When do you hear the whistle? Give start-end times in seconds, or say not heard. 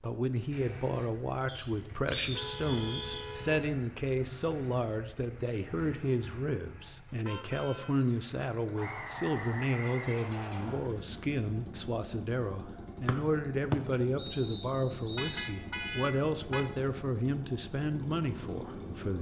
1.4-3.3, 8.8-10.8, 13.1-15.4.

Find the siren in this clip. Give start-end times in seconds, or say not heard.
not heard.